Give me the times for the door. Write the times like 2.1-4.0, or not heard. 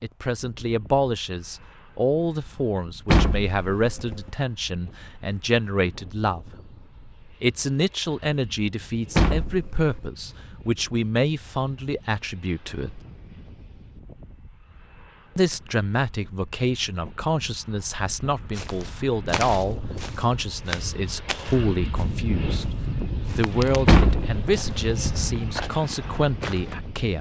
3.1-4.3, 9.2-10.0, 23.9-25.2.